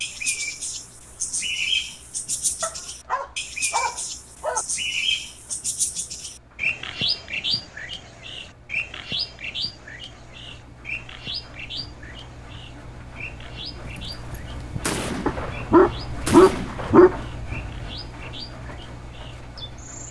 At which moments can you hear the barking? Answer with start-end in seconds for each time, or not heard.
2.6-4.7, 15.2-17.7.